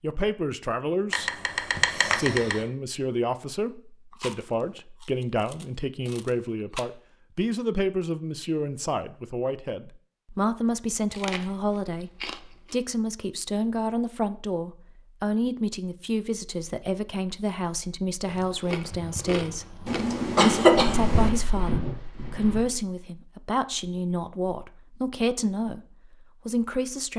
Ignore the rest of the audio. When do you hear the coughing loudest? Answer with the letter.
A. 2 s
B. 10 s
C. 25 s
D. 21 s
D.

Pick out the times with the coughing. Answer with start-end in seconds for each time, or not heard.
1.1-2.6, 19.9-21.3.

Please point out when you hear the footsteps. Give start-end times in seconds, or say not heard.
20.9-22.8.